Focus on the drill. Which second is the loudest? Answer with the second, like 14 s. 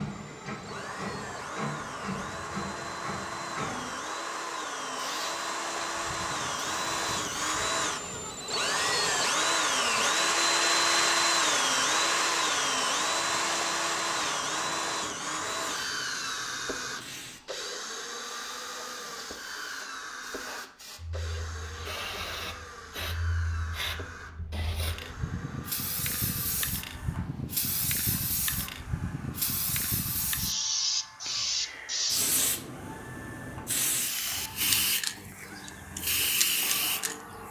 11 s.